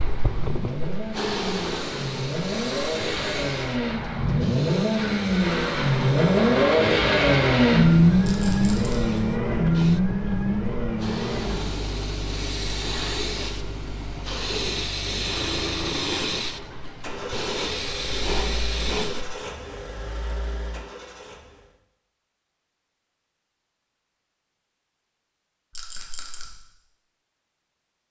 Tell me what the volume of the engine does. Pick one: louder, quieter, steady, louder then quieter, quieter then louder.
louder then quieter.